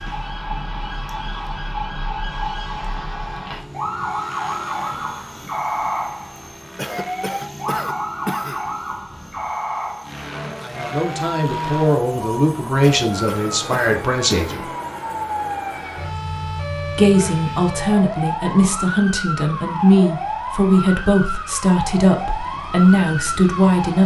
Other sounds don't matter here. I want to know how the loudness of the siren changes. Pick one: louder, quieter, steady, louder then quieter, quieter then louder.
steady.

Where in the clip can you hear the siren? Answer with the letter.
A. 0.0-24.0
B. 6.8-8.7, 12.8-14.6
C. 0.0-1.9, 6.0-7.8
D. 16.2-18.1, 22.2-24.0
A.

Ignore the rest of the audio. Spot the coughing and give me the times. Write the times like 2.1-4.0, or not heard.
6.8-8.7, 12.8-14.6.